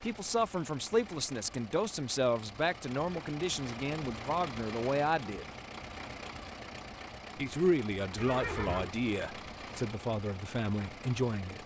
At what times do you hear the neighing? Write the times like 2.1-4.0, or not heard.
8.2-8.9.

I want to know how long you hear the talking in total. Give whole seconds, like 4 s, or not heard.
10 s.